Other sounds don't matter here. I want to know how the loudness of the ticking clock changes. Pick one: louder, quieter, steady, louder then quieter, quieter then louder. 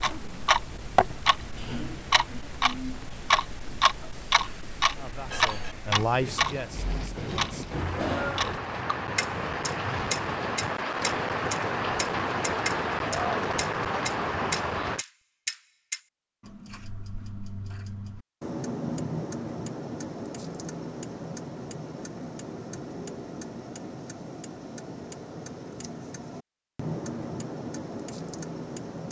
quieter.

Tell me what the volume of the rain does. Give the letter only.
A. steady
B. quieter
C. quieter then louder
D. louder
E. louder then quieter
D.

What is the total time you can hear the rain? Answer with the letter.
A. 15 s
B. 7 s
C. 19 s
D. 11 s
A.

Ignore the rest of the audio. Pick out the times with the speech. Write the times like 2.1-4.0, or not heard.
5.0-7.8.